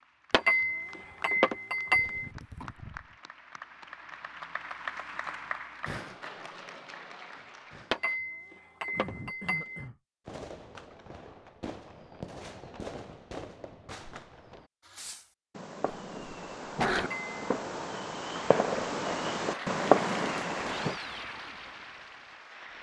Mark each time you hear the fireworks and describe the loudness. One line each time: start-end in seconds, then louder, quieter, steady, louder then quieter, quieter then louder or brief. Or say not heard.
10.2-20.9 louder.